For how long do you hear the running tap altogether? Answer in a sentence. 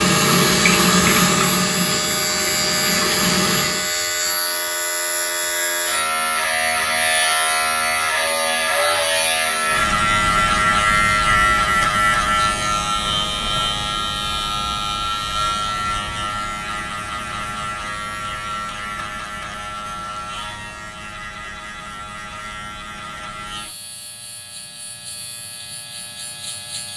The running tap can be heard for 4 seconds in total.